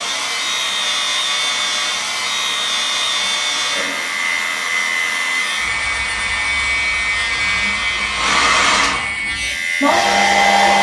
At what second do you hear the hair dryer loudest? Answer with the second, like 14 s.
10 s.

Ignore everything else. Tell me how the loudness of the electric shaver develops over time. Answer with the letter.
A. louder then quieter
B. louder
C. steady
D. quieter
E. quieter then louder
C.